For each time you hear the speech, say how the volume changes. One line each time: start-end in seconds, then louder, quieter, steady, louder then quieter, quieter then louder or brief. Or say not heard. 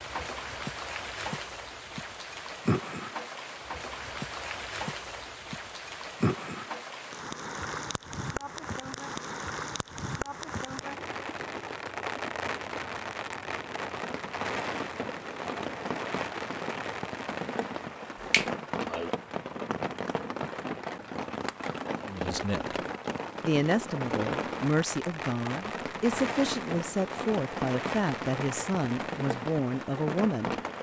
22.1-22.8 brief
23.4-30.6 steady.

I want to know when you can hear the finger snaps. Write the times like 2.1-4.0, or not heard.
18.2-19.1.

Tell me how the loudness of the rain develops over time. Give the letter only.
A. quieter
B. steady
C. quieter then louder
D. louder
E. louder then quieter
B.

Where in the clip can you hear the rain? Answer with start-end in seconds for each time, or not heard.
0.0-30.7.